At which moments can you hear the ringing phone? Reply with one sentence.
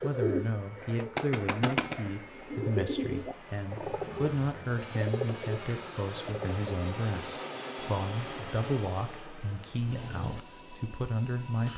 The ringing phone can't be heard in this clip.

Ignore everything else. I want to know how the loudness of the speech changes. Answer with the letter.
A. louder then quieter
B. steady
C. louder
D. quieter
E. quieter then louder
B.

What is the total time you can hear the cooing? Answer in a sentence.
The cooing can be heard for 7 seconds in total.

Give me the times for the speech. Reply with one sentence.
The speech can be heard from 0.0 to 11.7 s.